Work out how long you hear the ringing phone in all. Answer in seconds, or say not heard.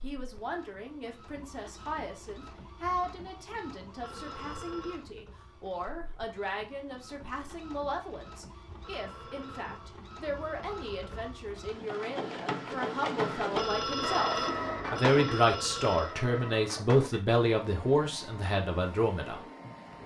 6 s.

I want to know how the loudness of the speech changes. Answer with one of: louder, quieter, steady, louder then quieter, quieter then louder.
louder.